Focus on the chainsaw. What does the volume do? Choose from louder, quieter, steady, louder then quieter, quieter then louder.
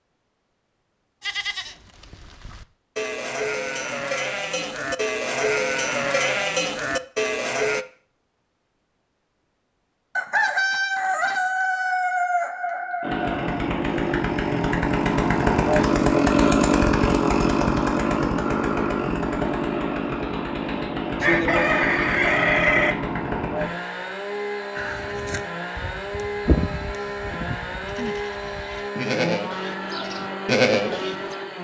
quieter.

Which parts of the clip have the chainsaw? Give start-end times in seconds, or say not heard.
13.0-31.5.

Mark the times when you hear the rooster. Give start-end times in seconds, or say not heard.
10.2-13.7, 21.2-22.9.